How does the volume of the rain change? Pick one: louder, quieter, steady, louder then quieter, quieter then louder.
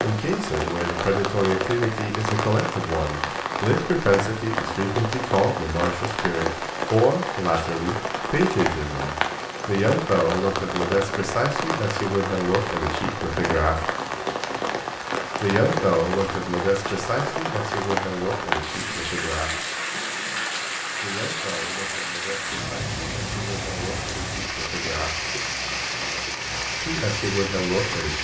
steady.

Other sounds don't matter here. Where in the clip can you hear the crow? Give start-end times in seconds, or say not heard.
not heard.